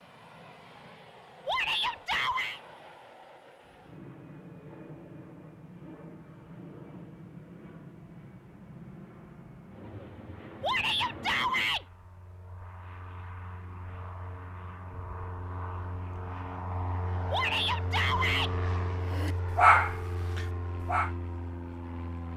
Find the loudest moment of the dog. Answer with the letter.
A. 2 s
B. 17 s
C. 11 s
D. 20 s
D.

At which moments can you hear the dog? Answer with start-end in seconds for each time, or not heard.
19.1-21.1.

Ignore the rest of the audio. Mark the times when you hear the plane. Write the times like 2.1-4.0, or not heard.
0.0-22.3.